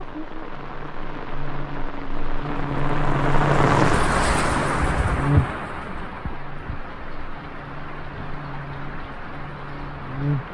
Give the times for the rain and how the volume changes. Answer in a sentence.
The rain can be heard from 0.0 to 10.4 s, getting louder then quieter.